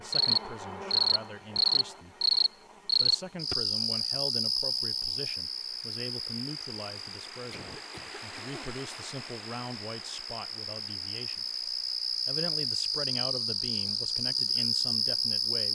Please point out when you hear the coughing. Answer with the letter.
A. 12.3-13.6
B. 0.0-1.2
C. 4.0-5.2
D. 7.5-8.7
D.